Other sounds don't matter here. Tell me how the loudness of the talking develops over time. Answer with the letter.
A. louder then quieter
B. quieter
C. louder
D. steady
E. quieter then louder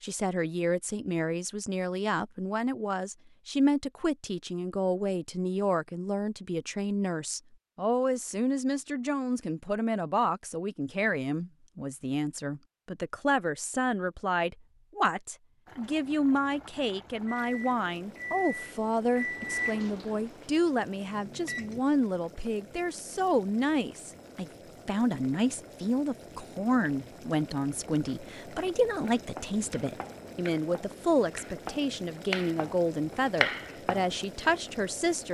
D.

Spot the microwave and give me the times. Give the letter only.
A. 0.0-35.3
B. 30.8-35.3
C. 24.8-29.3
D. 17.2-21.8
D.